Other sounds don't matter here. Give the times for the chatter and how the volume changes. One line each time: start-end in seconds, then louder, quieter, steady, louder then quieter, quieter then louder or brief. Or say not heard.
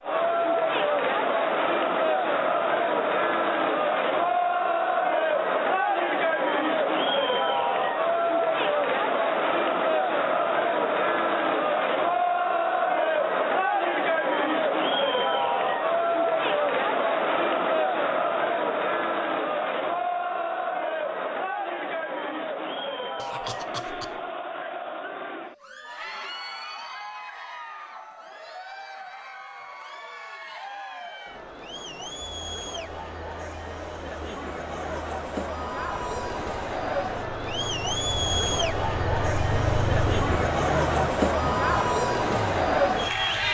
0.0-43.5 quieter then louder.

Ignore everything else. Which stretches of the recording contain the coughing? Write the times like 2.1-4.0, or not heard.
23.1-24.2.